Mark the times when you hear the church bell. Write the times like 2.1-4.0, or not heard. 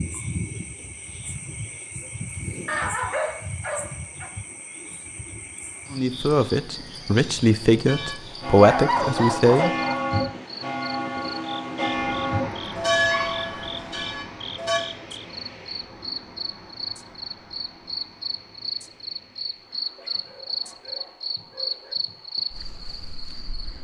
7.8-14.8.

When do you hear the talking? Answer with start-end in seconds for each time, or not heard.
5.9-9.7.